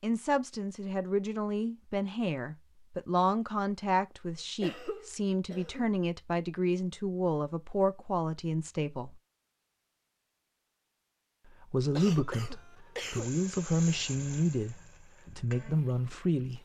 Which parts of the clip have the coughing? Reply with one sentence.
You can hear the coughing from 4.6 to 6.0 s and from 11.9 to 13.3 s.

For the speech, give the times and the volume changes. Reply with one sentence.
The speech can be heard from 0.0 to 9.2 s, at a steady volume; and from 11.5 to 16.5 s, at a steady volume.